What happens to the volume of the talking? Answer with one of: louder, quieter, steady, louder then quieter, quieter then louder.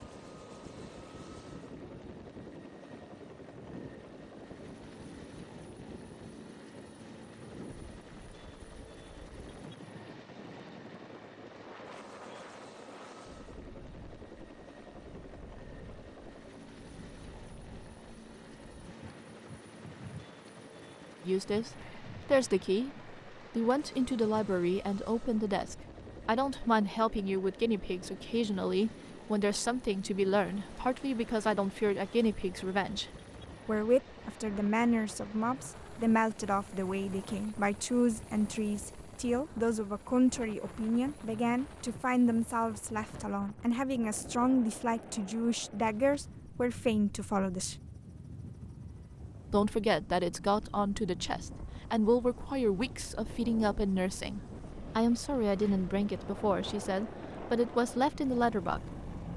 steady.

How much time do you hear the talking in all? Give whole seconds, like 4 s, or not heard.
36 s.